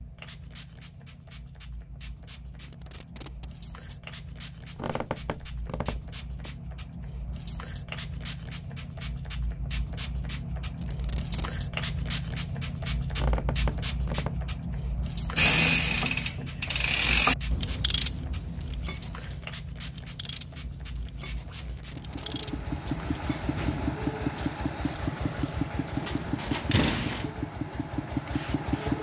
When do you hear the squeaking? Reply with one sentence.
The squeaking can be heard from 4.8 to 6.5 s, from 13.1 to 14.4 s and from 26.0 to 27.3 s.